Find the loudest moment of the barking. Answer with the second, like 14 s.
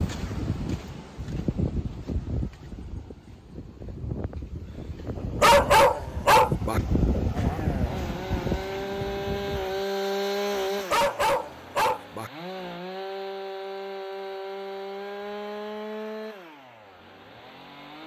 6 s.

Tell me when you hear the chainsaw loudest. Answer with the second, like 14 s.
10 s.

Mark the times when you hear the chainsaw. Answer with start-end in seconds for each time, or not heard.
7.3-18.0.